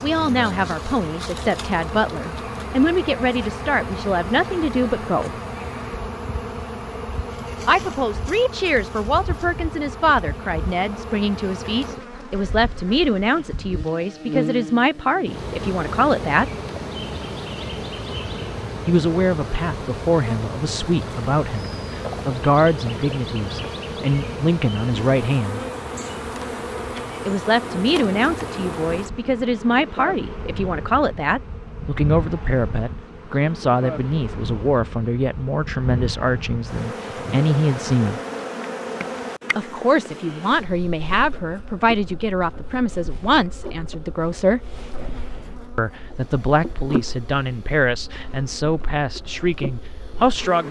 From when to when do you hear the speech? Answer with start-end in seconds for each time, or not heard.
0.0-5.3, 7.7-16.4, 18.9-25.6, 27.2-38.2, 39.5-44.6, 45.8-50.6.